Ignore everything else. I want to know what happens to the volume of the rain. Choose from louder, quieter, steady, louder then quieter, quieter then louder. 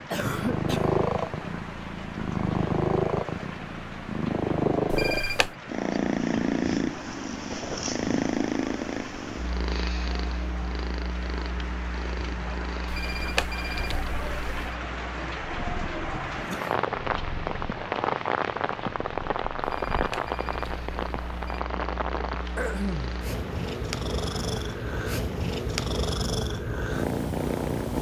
louder then quieter.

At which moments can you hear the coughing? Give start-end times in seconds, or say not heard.
0.1-0.9, 16.3-16.8, 22.6-23.2.